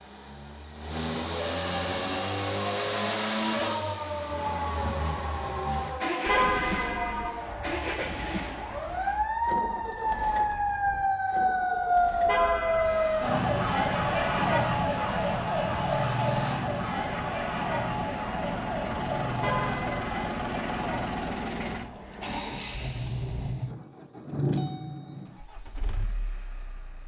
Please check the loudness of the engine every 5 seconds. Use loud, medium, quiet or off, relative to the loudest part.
loud, loud, medium, medium, loud, quiet.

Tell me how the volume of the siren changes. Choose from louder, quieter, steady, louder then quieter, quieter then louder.
louder then quieter.